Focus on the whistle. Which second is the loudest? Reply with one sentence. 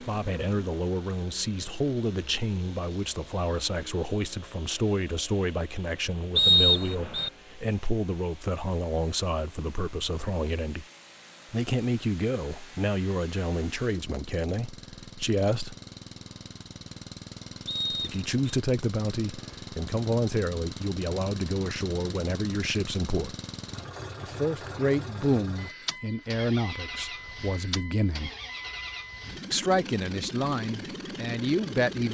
The volume of the whistle peaks at 7 seconds.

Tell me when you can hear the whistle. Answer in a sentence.
You can hear the whistle from 6.3 to 7.3 s and from 17.6 to 18.4 s.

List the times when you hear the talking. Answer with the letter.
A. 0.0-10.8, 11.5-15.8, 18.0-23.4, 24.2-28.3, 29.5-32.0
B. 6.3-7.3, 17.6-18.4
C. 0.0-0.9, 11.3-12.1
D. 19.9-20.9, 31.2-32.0
A.